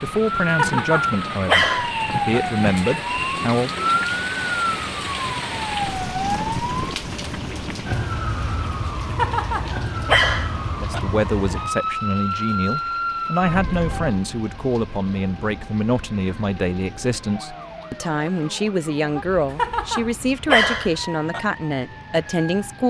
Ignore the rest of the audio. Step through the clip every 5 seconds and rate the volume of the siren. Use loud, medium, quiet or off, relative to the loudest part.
loud, loud, loud, quiet, quiet.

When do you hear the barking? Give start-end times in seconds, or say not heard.
0.6-2.4, 9.2-11.0, 19.6-21.4.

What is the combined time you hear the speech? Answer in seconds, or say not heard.
16 s.